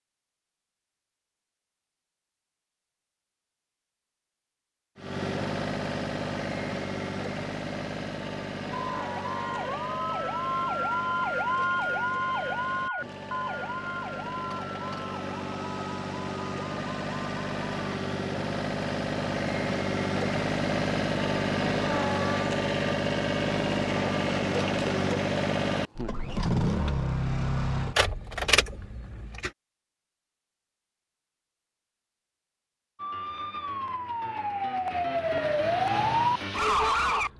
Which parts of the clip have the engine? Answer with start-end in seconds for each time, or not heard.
5.0-29.5.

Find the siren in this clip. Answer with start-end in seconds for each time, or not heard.
8.8-18.0, 33.0-37.3.